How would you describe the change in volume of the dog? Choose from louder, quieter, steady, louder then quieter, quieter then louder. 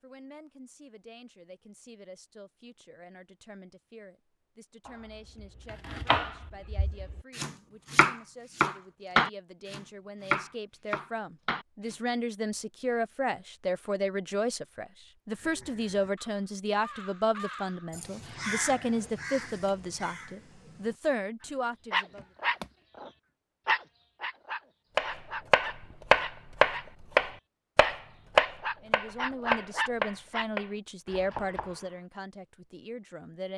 quieter then louder.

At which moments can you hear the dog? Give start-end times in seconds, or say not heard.
21.9-30.4.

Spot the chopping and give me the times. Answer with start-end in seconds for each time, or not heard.
4.8-11.9, 24.9-31.9.